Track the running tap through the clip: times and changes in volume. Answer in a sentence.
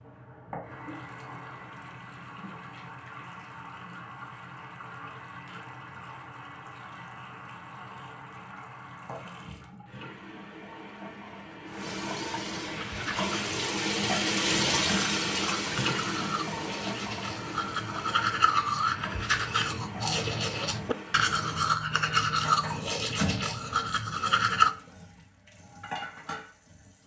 The running tap can be heard from 0.0 to 27.0 s, getting louder then quieter.